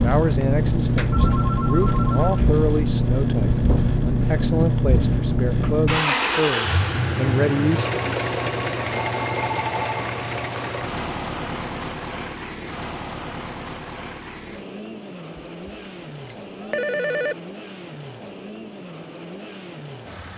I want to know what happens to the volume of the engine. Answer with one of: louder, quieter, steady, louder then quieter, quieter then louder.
quieter.